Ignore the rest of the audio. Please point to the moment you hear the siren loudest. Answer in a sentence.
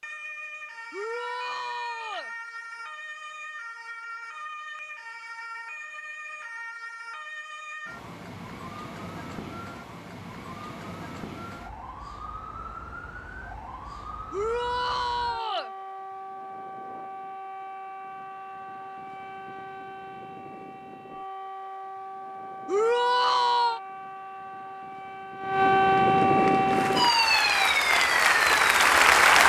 The volume of the siren peaks at 26 seconds.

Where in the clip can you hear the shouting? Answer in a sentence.
The shouting can be heard from 0.9 to 2.3 s, from 14.3 to 15.7 s and from 22.6 to 23.8 s.